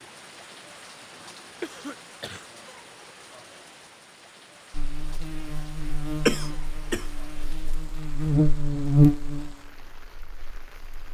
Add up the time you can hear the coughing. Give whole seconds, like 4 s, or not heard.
2 s.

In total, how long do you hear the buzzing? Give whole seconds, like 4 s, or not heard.
6 s.